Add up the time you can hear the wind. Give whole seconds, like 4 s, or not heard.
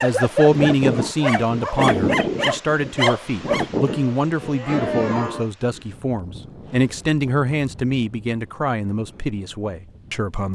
10 s.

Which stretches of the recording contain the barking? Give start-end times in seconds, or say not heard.
0.0-5.5.